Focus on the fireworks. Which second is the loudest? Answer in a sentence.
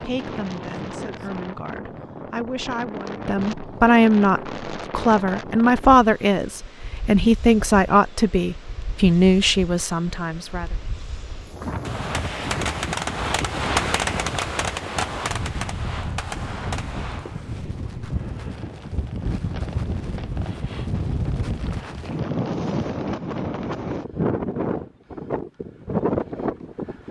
The loudest moment of the fireworks is at 14 seconds.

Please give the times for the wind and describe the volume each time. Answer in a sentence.
The wind can be heard from 0.0 to 27.0 s, getting quieter then louder.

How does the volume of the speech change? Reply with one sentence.
The volume of the speech goes up.